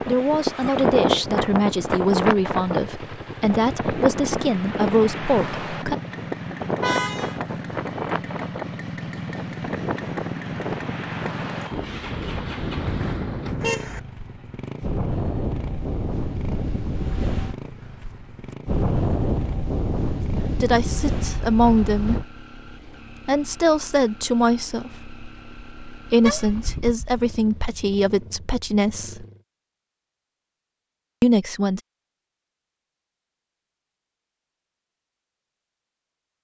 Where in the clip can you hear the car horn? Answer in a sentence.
The car horn can be heard from 6.8 to 7.4 s, from 13.6 to 14.0 s and from 26.2 to 27.7 s.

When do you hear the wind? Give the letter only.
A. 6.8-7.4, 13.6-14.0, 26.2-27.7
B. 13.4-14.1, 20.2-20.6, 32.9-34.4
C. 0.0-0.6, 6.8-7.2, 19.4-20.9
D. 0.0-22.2
D.